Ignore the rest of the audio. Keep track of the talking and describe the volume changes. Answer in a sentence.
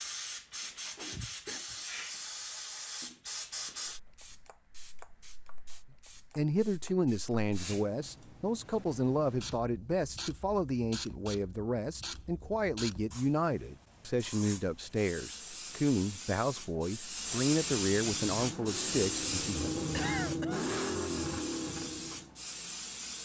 The volume of the talking stays about the same.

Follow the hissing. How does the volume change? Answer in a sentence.
The volume of the hissing goes down, then up.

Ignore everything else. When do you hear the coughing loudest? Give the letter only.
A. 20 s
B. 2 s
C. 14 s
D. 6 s
A.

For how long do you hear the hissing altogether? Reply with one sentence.
The hissing can be heard for 23 seconds in total.